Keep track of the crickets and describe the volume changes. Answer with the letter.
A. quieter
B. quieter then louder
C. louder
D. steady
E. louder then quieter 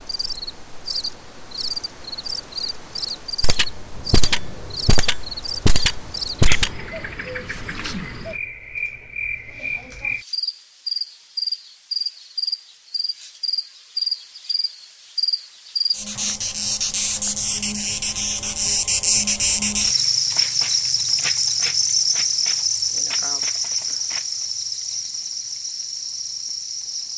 C.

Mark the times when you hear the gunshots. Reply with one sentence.
The gunshots can be heard from 3.4 to 6.8 s.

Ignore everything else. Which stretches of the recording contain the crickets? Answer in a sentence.
The crickets can be heard from 0.0 to 27.1 s.